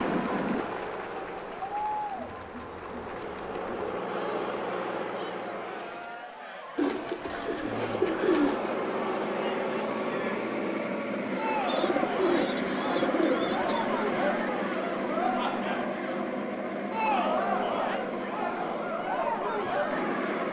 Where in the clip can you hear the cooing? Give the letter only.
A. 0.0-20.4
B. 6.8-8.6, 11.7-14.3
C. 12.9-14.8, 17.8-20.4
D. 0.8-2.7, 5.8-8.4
B.